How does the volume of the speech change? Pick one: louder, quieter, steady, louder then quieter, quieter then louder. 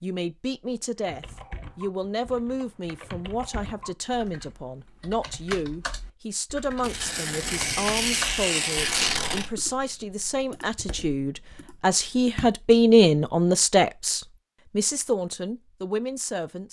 louder.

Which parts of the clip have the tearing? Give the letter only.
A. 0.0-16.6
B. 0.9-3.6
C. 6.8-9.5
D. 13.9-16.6
C.